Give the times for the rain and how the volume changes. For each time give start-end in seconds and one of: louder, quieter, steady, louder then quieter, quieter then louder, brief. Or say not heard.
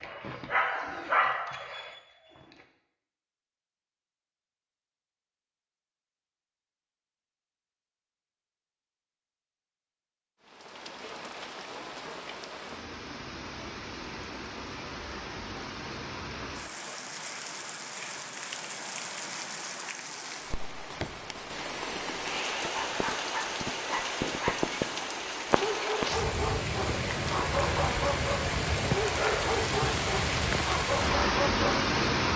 10.4-32.3 louder.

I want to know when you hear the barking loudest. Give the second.
1 s.